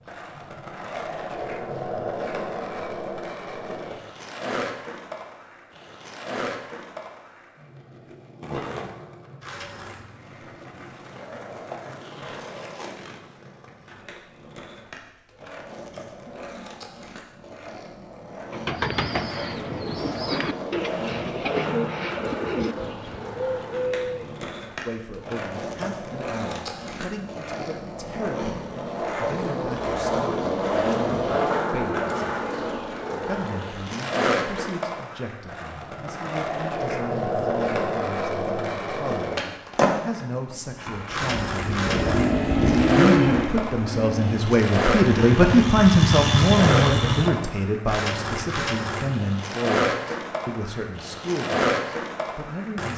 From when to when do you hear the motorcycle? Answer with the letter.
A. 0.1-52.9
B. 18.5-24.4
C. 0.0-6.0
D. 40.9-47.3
D.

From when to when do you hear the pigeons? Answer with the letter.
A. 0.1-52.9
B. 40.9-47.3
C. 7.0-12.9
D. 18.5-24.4
D.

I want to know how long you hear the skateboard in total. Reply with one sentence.
The skateboard can be heard for 53 seconds in total.